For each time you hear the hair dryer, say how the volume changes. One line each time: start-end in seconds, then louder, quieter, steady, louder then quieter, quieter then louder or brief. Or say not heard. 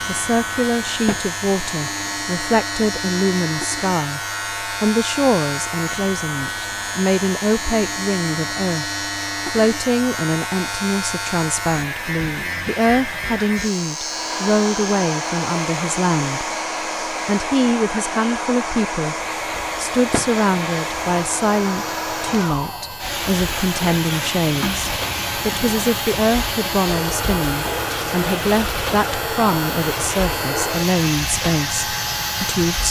0.0-32.8 louder.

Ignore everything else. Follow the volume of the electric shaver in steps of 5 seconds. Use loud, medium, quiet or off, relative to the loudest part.
loud, loud, loud, medium, medium, loud, loud.